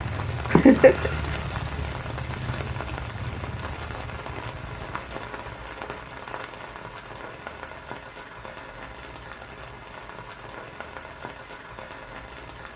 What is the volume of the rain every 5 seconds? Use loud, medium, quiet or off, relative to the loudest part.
loud, medium, medium.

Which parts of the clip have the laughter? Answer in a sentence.
You can hear the laughter from 0.5 to 1.1 s.